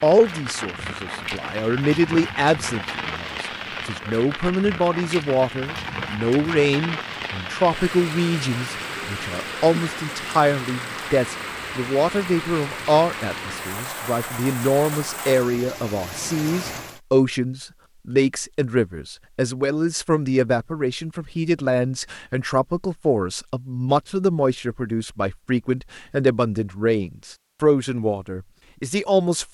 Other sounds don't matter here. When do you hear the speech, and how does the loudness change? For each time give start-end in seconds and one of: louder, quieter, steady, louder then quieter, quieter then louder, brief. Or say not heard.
0.0-29.4 steady.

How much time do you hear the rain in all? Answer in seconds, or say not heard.
17 s.